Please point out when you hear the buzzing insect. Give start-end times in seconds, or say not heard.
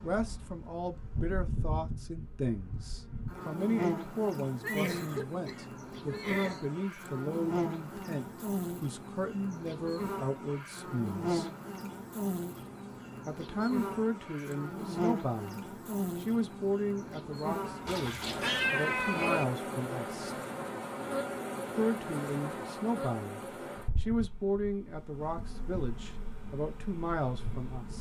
0.0-27.9.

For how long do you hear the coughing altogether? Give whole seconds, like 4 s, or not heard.
2 s.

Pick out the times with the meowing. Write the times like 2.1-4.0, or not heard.
17.9-19.4.